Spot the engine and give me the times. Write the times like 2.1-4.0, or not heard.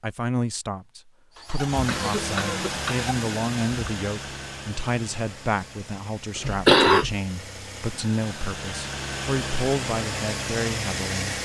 1.4-11.4.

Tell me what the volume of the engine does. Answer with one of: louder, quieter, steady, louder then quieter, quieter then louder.
quieter then louder.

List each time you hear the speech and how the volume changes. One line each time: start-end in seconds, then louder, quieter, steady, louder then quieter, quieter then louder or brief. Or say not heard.
0.0-11.3 steady.